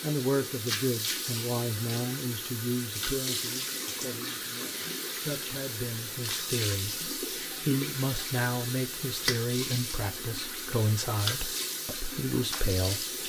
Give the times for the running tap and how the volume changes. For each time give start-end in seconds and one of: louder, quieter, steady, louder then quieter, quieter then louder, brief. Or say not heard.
0.0-13.2 steady.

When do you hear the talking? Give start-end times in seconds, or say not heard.
0.0-13.2.